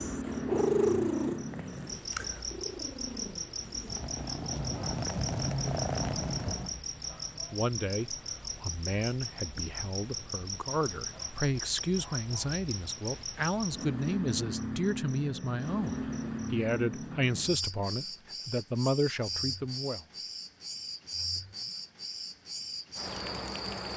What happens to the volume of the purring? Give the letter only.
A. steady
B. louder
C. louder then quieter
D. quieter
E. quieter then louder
E.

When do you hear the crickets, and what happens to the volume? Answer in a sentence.
You can hear the crickets from 0.0 to 23.9 s, at a steady volume.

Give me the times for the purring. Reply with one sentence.
You can hear the purring from 0.0 to 6.8 s.